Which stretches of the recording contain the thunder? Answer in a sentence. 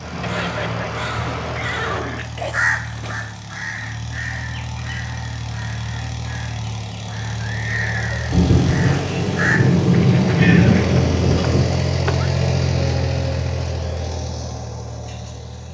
The thunder can be heard from 8.3 to 11.8 s.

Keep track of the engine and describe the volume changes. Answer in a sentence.
The loudness of the engine goes up.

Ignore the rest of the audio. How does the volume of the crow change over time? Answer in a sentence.
The volume of the crow goes down, then up.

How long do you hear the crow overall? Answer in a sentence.
You can hear the crow for 11 seconds altogether.